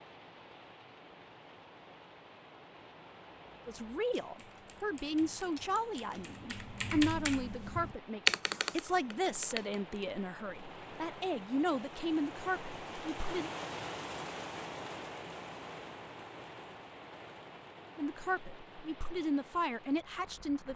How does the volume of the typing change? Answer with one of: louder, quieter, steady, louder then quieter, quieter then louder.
louder then quieter.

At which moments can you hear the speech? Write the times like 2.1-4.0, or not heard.
3.6-13.5, 17.9-20.7.